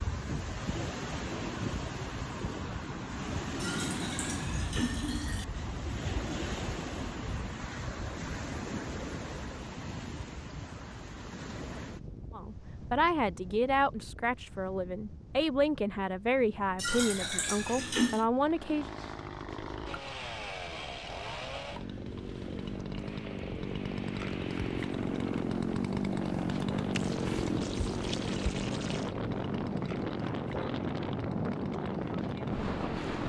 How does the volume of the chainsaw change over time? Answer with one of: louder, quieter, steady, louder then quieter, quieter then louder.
louder then quieter.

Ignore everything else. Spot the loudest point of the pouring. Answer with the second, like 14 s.
18 s.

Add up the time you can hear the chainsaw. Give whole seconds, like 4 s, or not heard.
15 s.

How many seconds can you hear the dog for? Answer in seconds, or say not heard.
not heard.